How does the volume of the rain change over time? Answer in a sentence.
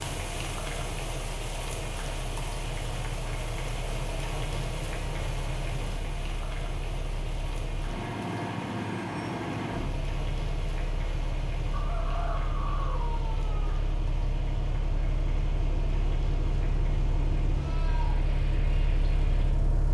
The volume of the rain goes down.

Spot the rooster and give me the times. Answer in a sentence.
You can hear the rooster from 11.7 to 13.8 s.